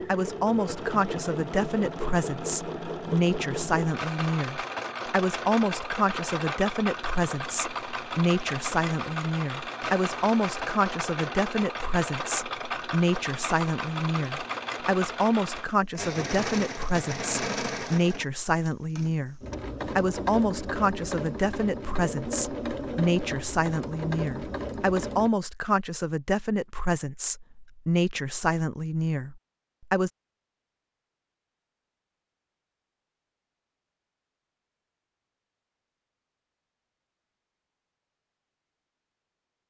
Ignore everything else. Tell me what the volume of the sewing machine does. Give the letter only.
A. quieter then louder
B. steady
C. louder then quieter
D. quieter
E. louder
B.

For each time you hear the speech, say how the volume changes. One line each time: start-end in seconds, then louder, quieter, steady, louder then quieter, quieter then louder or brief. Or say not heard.
0.1-30.1 steady.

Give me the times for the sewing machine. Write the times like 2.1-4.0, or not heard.
0.0-25.3.